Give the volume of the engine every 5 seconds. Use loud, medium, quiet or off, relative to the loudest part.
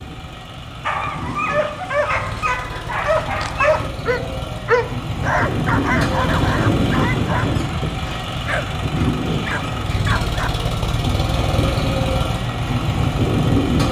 medium, loud, loud.